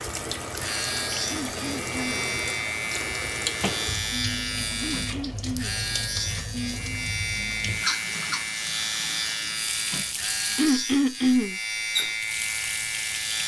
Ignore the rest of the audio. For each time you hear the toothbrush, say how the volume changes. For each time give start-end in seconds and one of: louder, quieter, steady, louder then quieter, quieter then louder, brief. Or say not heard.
not heard.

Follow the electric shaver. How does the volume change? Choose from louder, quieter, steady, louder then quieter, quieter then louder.
steady.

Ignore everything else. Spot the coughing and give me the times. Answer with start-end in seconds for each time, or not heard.
1.2-2.3, 4.8-5.8, 10.6-11.6.